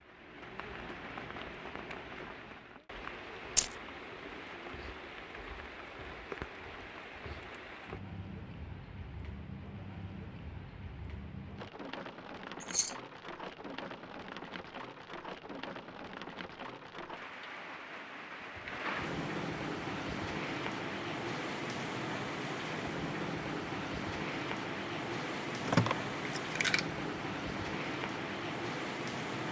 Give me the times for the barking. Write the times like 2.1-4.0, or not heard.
not heard.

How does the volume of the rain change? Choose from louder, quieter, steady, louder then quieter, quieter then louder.
louder.